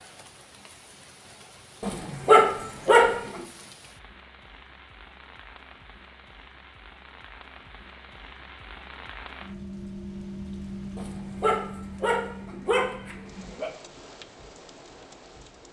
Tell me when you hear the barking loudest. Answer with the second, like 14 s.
2 s.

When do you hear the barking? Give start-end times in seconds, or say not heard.
1.8-3.4, 10.9-13.7.